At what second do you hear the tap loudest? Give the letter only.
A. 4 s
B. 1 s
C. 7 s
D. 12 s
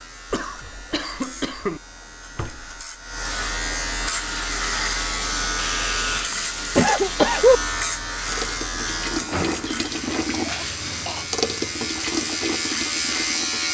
D.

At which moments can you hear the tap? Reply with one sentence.
The tap can be heard from 4.1 to 13.6 s.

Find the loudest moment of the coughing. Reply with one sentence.
The loudest moment of the coughing is at 7 seconds.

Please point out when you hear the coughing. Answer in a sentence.
You can hear the coughing from 0.3 to 1.8 s, from 5.5 to 7.6 s and from 10.4 to 11.3 s.